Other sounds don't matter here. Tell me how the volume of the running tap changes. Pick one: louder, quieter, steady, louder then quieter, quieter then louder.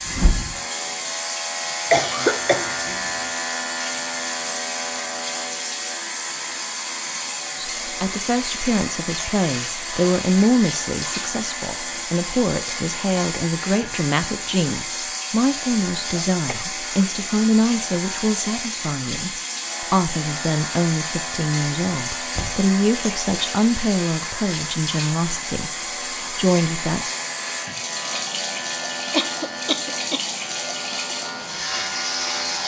steady.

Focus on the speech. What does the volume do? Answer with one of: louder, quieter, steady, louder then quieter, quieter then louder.
steady.